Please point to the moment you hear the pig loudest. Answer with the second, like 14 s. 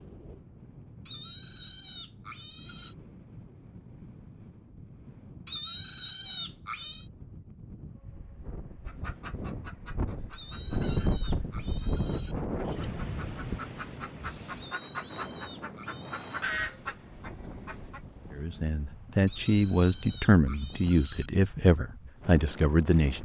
6 s.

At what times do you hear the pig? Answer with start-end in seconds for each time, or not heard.
1.1-3.0, 5.5-7.1, 10.3-12.3, 14.6-16.4, 19.2-21.3.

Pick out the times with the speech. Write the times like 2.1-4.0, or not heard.
18.3-23.1.